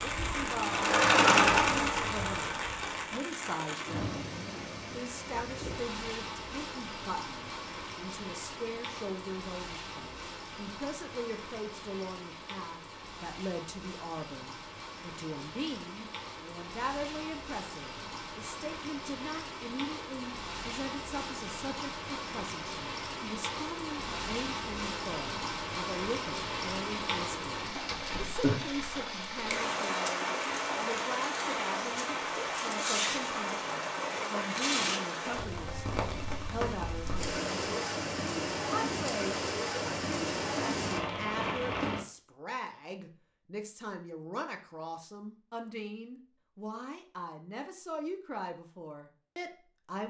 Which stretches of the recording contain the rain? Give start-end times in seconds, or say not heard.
0.0-42.0.